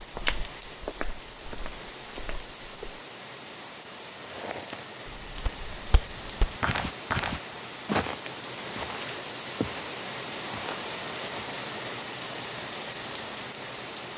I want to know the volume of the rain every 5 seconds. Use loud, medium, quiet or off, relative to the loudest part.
medium, loud, loud.